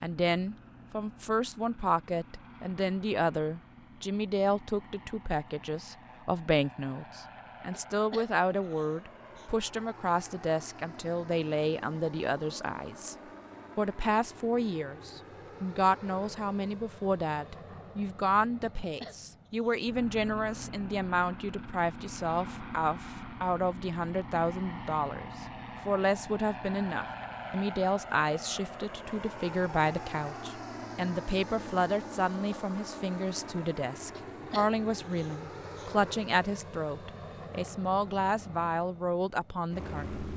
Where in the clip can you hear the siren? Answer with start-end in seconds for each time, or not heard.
not heard.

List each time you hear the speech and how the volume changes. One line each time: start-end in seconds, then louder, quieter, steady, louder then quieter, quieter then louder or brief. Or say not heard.
0.0-13.2 steady
13.8-40.2 steady.